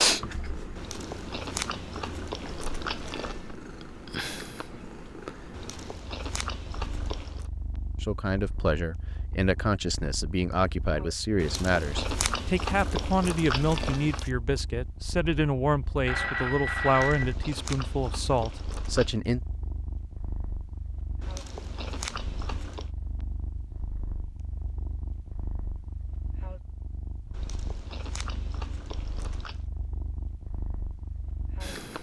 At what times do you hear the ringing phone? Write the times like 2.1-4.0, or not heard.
16.1-17.4.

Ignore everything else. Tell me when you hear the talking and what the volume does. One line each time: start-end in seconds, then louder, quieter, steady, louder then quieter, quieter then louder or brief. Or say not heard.
8.0-19.4 steady.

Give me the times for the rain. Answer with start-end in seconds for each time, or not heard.
not heard.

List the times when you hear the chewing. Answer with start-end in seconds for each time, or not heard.
0.8-3.5, 5.5-7.5, 11.3-14.3, 16.9-19.1, 21.2-22.9, 27.3-29.6.